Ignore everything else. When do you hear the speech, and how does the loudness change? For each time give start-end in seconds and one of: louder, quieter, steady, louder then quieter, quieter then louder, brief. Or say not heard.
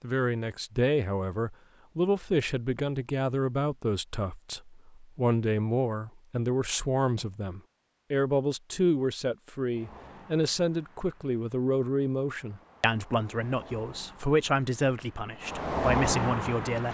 0.0-16.8 steady.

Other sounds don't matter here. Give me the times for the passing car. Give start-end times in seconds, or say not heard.
9.7-16.8.